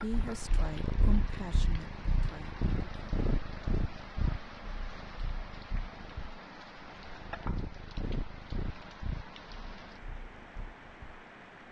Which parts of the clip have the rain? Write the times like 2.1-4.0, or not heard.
0.0-11.6.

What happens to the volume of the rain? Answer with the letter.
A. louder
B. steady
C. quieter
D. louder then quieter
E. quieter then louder
B.